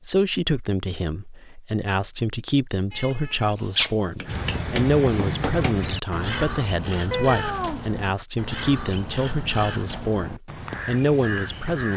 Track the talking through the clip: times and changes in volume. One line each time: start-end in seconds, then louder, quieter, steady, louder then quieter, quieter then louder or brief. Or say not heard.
0.1-11.9 steady.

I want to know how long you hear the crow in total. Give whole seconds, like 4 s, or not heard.
8 s.